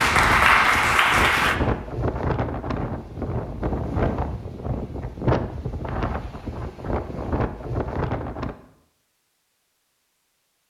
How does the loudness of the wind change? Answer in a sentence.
The volume of the wind stays about the same.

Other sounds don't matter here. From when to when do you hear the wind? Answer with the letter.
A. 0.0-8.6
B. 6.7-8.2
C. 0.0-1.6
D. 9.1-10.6
A.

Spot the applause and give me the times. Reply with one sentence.
The applause can be heard from 0.0 to 1.6 s.